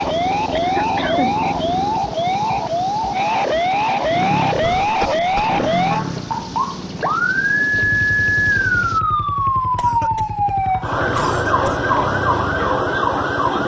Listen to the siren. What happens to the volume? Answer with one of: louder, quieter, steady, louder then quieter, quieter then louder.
steady.